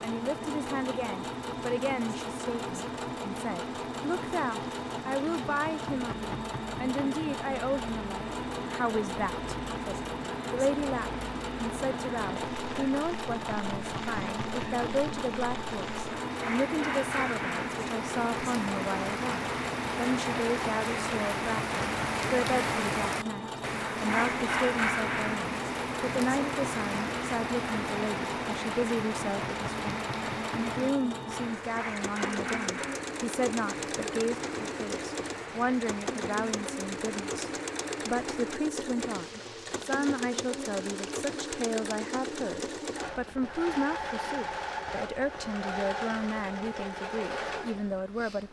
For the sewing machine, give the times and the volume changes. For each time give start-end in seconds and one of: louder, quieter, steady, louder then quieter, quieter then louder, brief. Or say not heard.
0.0-48.4 steady.